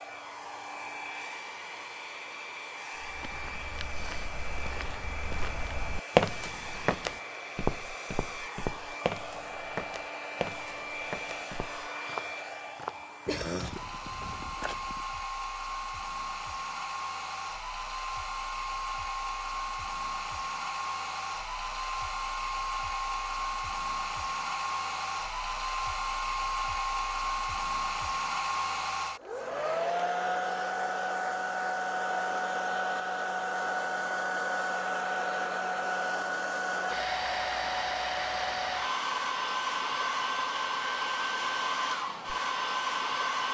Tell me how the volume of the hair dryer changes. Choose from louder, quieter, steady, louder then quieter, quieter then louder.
louder.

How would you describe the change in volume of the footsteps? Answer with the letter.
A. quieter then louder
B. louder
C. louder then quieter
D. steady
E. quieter
C.